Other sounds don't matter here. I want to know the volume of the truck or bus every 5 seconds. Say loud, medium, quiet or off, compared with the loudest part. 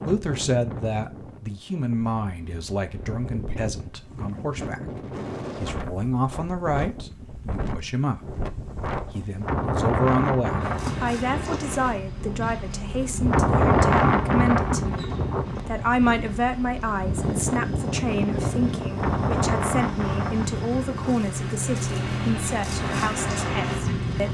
off, off, medium, medium, loud.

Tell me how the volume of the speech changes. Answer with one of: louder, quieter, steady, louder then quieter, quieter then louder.
steady.